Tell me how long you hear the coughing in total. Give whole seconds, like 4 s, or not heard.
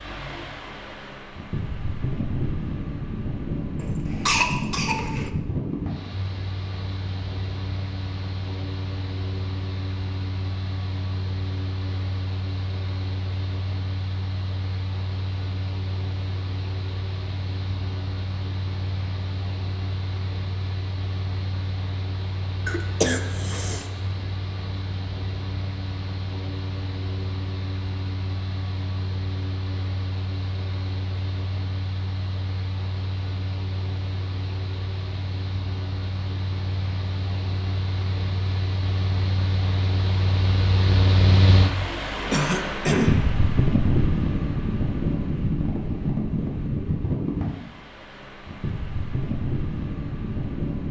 4 s.